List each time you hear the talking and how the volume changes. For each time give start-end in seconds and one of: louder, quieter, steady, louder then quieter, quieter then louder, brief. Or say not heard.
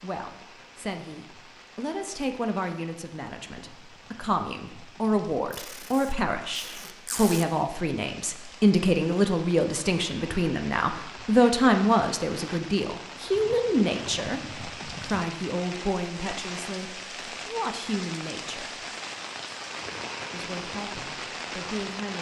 0.0-18.9 louder then quieter
20.3-22.1 brief.